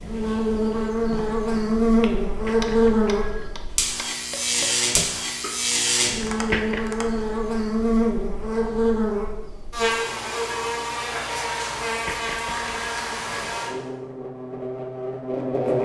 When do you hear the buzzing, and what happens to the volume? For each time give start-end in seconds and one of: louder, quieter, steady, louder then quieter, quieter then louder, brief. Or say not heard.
0.0-15.7 quieter.